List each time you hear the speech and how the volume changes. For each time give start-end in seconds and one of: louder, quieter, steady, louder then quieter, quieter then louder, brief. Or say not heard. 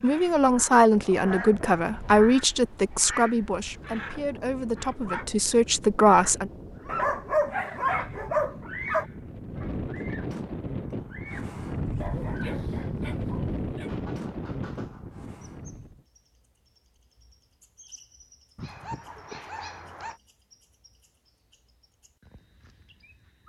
0.0-6.5 quieter then louder.